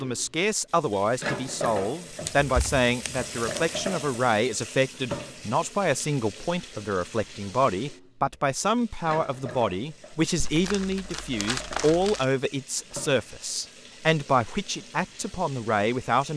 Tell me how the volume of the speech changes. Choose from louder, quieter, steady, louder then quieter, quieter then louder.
steady.